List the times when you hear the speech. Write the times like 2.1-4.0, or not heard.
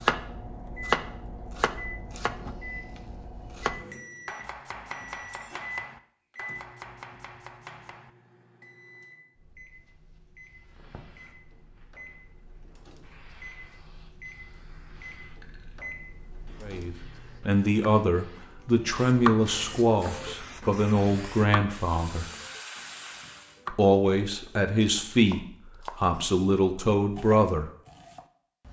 16.6-22.2, 23.7-27.7.